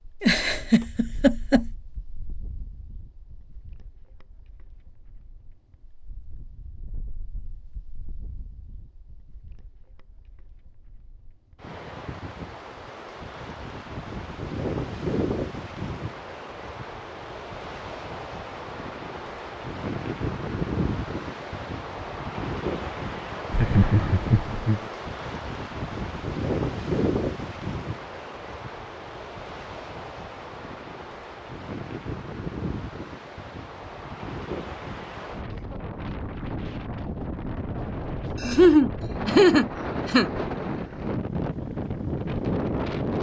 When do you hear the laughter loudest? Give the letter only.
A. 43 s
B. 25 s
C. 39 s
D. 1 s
C.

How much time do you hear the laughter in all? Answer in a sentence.
You can hear the laughter for 5 seconds altogether.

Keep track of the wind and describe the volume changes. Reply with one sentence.
The volume of the wind goes up.